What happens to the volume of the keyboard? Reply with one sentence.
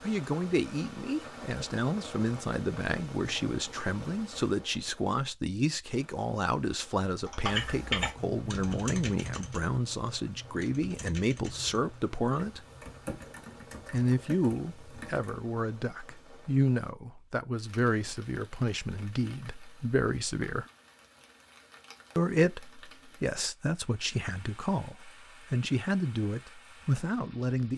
The loudness of the keyboard goes down.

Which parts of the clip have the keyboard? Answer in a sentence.
You can hear the keyboard from 7.2 to 15.4 s.